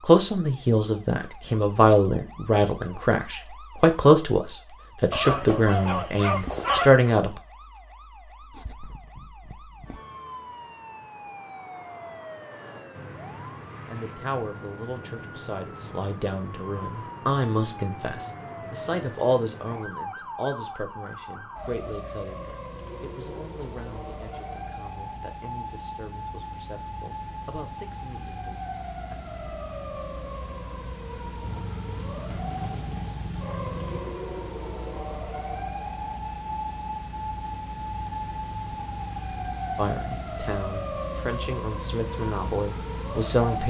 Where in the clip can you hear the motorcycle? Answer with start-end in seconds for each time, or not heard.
31.4-34.0.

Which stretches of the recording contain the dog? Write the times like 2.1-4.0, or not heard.
5.1-7.1.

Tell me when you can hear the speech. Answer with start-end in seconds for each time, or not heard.
0.0-7.4, 13.8-29.1, 39.8-43.6.